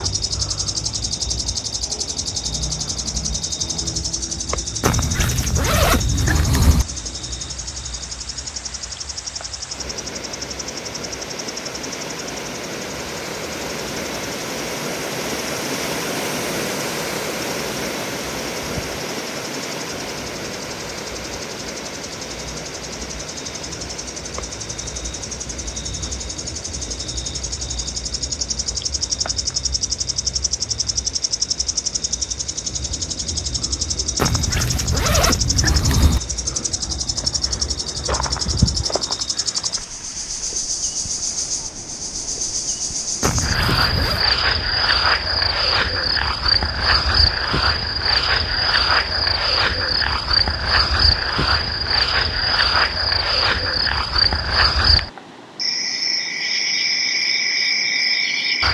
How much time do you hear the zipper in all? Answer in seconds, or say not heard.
5 s.